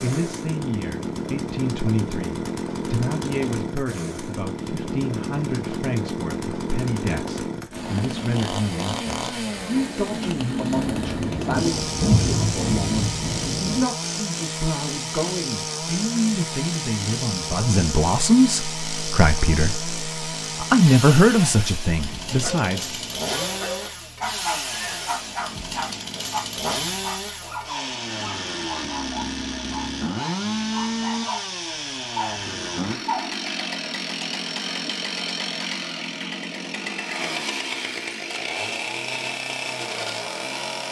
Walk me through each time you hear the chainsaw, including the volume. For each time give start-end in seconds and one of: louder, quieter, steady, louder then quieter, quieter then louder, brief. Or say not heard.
0.0-40.8 steady.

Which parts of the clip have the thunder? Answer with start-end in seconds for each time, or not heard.
10.8-13.8.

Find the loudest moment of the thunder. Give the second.
12 s.